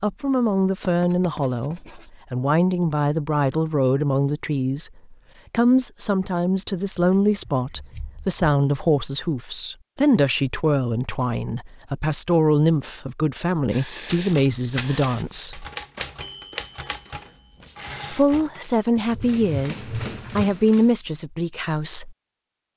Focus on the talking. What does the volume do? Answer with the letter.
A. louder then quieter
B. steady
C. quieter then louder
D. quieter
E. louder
B.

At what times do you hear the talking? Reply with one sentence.
The talking can be heard from 0.0 to 15.7 s and from 18.1 to 22.1 s.